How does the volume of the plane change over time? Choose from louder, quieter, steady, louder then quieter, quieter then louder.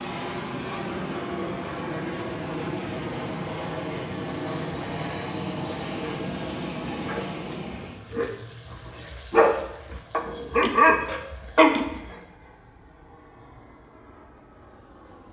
quieter.